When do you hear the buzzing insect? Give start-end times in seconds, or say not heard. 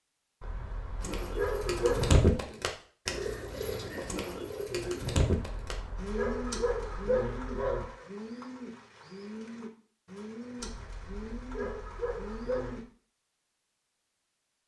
not heard.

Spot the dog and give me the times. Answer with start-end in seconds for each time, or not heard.
0.4-2.2, 5.2-8.1, 10.6-12.8.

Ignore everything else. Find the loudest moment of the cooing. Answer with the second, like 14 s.
2 s.